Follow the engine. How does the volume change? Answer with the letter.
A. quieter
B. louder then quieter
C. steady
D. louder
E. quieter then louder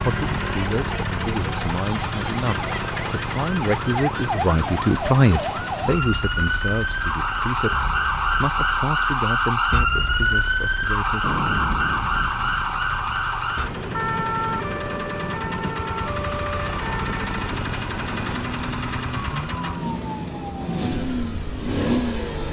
E.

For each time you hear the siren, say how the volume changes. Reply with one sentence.
You can hear the siren from 0.0 to 22.4 s, getting louder then quieter.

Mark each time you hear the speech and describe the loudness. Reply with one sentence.
The speech can be heard from 0.0 to 11.2 s, getting louder then quieter.